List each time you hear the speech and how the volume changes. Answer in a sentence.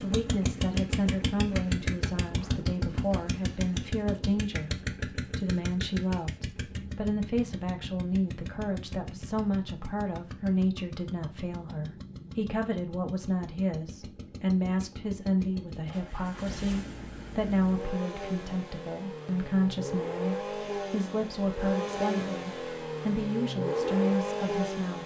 You can hear the speech from 0.0 to 25.0 s, at a steady volume.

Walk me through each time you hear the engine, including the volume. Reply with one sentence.
The engine can be heard from 0.0 to 25.0 s, getting quieter then louder.